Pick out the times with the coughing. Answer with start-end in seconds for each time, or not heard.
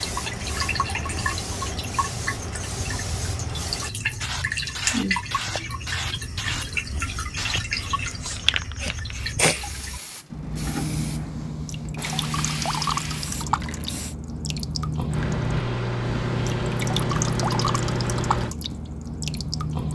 not heard.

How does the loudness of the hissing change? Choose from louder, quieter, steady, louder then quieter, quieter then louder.
steady.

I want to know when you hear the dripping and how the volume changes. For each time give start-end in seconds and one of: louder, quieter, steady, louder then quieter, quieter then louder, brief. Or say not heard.
0.0-19.9 steady.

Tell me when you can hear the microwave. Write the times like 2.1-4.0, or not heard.
15.1-18.6.